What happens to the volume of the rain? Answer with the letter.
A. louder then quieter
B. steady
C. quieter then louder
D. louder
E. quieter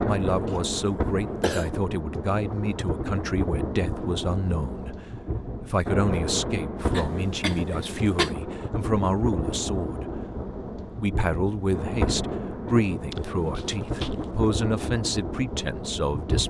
B.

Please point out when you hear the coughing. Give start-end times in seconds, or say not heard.
0.5-1.7, 6.9-8.3, 13.1-14.4.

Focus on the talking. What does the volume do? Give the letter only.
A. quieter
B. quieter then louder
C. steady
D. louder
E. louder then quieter
C.